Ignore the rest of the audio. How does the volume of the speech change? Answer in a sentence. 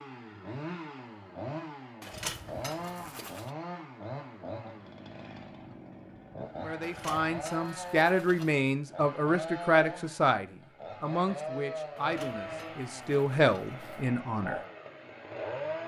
The loudness of the speech goes down, then up.